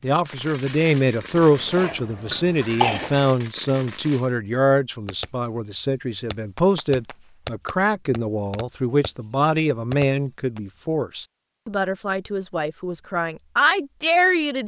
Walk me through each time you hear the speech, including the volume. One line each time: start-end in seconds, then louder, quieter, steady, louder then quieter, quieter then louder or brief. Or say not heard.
0.0-14.6 steady.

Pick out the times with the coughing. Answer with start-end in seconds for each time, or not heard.
1.4-3.3.